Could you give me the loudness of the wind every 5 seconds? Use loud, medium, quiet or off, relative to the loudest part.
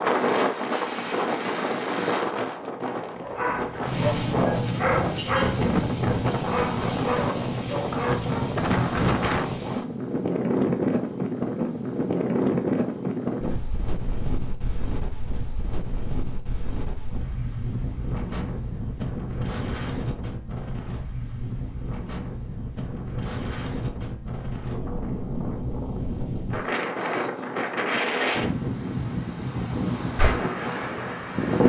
loud, loud, loud, medium, medium, loud, loud.